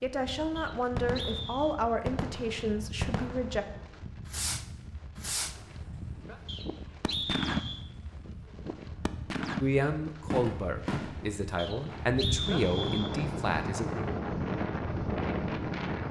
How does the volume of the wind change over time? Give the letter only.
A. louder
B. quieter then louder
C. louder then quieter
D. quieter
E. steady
A.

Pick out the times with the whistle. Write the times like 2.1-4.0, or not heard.
0.6-1.8, 6.5-7.8, 11.6-13.2.